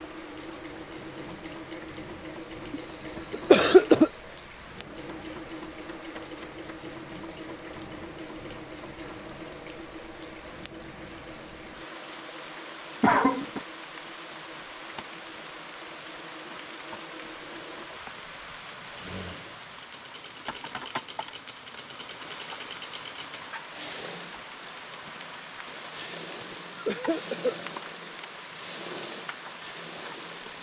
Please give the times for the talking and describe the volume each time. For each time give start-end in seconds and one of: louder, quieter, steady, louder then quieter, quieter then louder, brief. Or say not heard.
not heard.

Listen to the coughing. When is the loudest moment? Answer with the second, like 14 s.
4 s.